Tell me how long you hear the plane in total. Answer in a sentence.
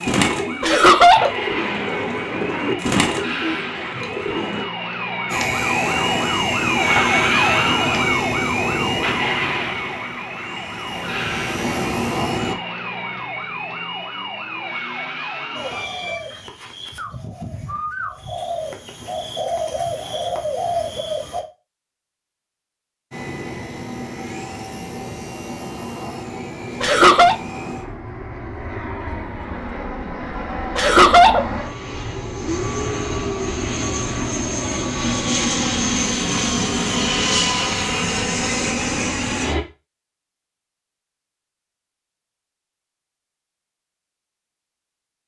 You can hear the plane for 24 seconds altogether.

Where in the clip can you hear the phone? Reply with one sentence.
The phone can't be heard in this clip.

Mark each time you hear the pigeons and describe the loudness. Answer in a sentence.
The pigeons can be heard from 0.0 to 4.7 s, getting louder then quieter; and from 15.6 to 21.4 s, getting louder.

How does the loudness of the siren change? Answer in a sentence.
The volume of the siren goes up, then down.